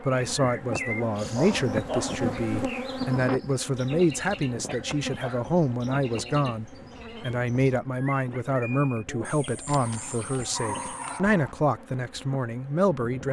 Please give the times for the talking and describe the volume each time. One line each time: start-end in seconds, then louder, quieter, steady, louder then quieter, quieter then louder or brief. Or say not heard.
0.0-13.2 steady.